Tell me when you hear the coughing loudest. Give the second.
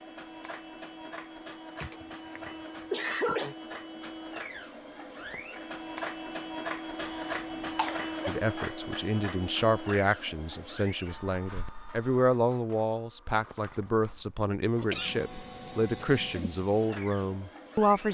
3 s.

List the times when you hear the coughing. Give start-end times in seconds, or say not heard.
1.8-3.5, 7.0-8.3, 14.8-16.5.